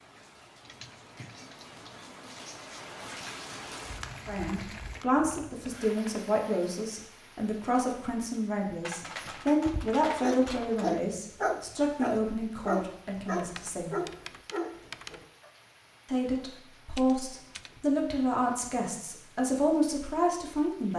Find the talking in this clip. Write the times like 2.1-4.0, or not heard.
4.2-13.9, 16.1-20.9.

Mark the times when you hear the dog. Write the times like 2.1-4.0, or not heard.
9.2-15.5.